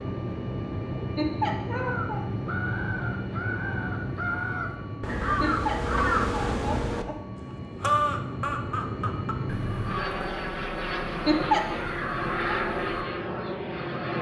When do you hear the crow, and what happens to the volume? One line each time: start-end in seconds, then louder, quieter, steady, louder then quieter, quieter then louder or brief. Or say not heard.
1.7-13.1 louder then quieter.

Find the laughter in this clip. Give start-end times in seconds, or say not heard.
1.1-2.2, 5.4-7.2, 11.2-11.8.